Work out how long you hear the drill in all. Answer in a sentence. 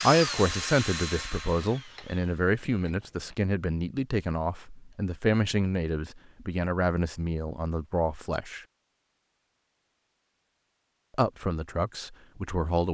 You can hear the drill for 3 seconds altogether.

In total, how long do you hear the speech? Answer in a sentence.
The speech can be heard for 10 seconds in total.